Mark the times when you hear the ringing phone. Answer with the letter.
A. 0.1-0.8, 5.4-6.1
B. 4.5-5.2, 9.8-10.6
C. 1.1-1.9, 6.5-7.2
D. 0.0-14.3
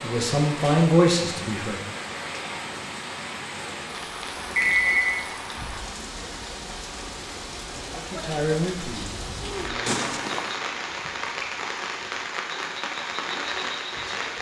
B.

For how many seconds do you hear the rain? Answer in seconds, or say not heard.
14 s.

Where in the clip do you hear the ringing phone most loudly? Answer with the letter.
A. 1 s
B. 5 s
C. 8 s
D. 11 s
B.